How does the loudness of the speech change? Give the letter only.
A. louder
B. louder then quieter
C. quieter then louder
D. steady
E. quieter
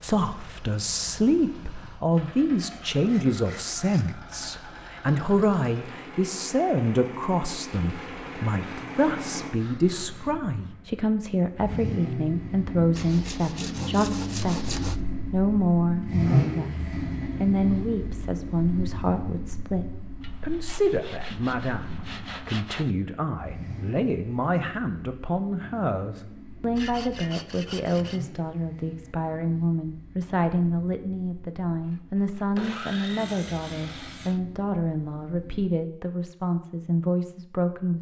D.